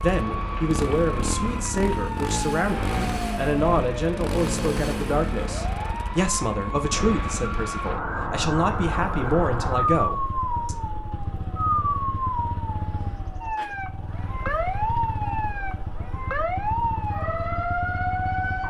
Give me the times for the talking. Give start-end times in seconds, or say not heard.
0.0-10.8.